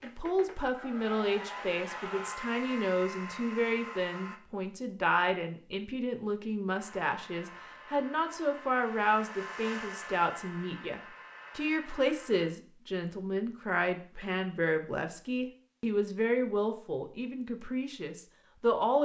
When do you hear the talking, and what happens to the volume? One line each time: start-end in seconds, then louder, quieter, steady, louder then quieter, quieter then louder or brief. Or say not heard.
0.0-19.0 steady.